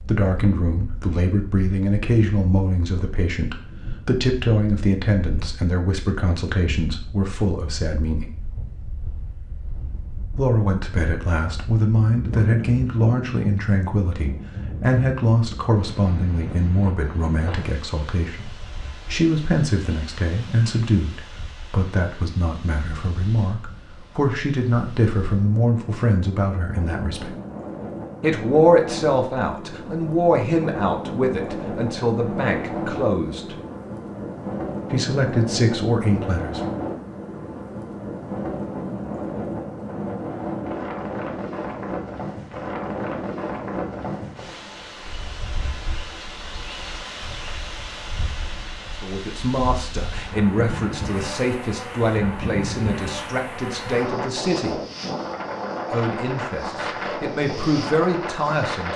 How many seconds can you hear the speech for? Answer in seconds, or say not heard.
41 s.